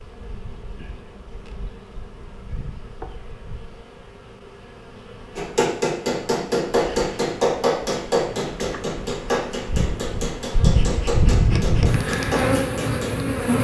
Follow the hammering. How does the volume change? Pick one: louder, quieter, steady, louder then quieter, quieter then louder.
quieter.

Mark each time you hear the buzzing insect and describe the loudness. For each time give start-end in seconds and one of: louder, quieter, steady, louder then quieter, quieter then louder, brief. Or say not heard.
0.0-13.6 louder.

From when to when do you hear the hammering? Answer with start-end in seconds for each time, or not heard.
5.3-13.2.